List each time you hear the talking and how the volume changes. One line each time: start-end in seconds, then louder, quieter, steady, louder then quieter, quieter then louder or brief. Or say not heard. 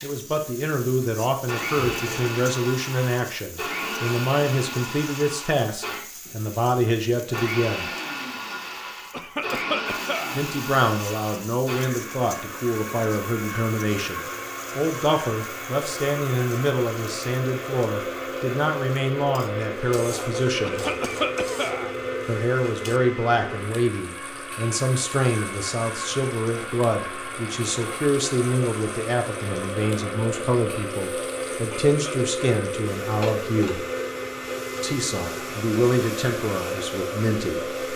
0.0-7.8 steady
10.3-20.9 steady
22.2-33.9 steady
34.8-37.8 brief.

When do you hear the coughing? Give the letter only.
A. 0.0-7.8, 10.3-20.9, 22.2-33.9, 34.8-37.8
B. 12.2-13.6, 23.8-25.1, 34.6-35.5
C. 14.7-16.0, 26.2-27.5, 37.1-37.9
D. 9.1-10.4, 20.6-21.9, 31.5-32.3
D.